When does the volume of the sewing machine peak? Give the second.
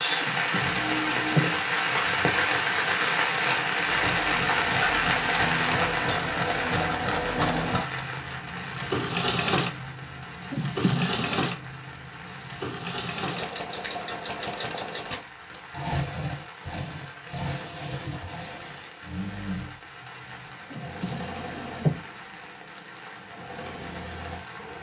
9 s.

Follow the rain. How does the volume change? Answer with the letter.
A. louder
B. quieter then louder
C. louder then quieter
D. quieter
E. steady
D.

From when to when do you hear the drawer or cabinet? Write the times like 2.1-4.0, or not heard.
0.2-1.5, 10.5-11.4, 20.7-22.0.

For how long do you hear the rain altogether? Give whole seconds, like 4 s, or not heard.
25 s.